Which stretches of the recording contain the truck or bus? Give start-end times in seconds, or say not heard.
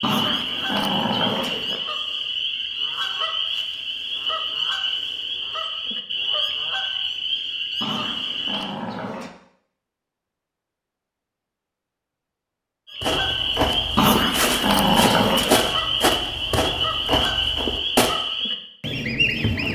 not heard.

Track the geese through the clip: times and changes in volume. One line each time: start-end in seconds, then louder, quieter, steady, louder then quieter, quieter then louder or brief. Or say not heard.
0.0-8.8 steady
12.8-19.7 steady.